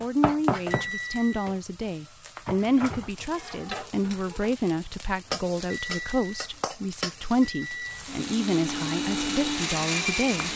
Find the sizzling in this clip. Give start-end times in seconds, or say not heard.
0.0-10.5.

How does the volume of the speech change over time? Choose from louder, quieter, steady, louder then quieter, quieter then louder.
steady.